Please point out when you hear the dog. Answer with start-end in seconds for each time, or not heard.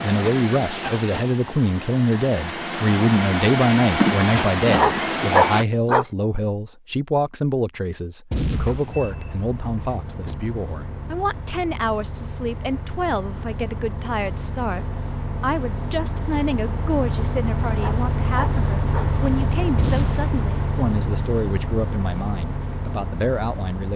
4.8-6.0, 17.8-19.1.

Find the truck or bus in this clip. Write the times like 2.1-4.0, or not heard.
0.0-5.7, 8.9-23.9.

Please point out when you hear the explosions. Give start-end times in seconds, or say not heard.
8.3-9.2, 19.8-20.4.